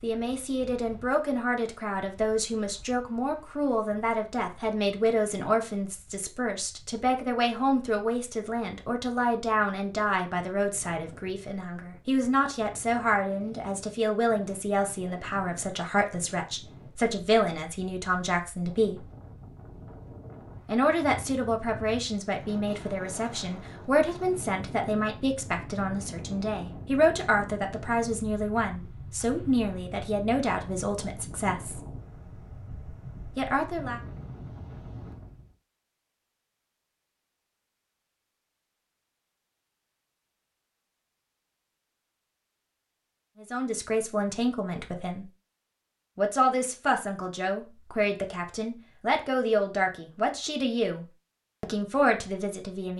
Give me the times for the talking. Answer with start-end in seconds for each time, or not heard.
0.0-19.1, 20.6-31.8, 33.4-34.0, 43.4-45.2, 46.1-52.9.